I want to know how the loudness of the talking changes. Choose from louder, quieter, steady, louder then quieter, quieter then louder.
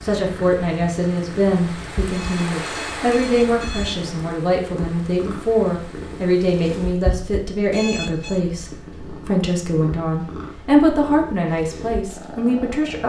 steady.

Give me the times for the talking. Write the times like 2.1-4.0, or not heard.
0.0-13.0.